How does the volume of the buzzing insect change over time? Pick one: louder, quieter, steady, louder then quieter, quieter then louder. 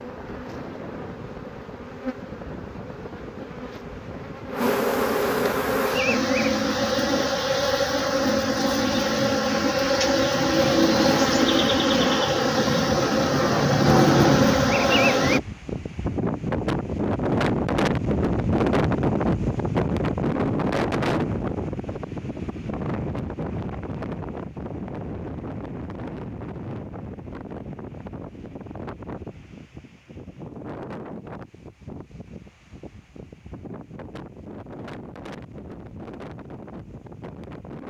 louder.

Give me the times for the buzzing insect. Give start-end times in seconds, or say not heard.
0.0-15.4.